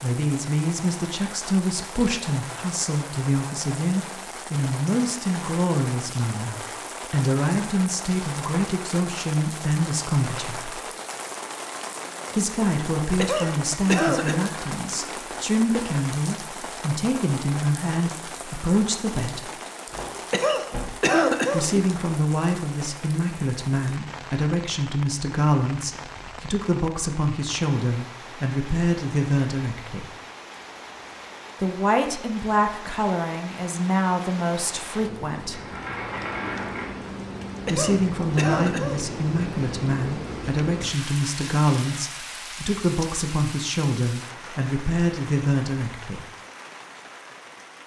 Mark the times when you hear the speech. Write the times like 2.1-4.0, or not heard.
0.0-10.8, 12.3-19.5, 21.5-30.1, 31.6-35.6, 37.6-46.2.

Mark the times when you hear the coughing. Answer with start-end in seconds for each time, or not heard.
13.2-14.3, 20.3-21.6, 37.6-39.0.